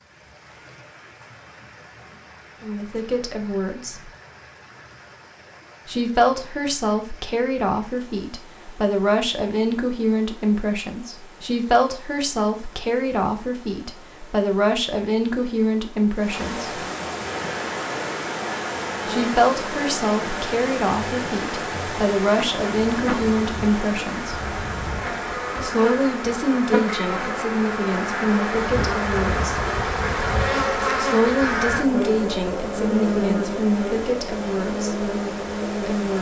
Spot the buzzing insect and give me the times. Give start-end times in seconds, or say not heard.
17.2-36.1.